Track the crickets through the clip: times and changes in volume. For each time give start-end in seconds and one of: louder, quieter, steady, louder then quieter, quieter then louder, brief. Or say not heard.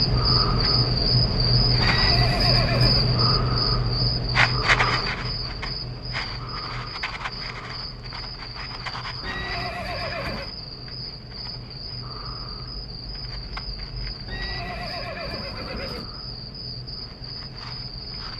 0.0-18.3 quieter.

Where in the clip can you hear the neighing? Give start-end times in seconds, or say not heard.
1.8-3.1, 9.2-10.5, 14.2-16.1.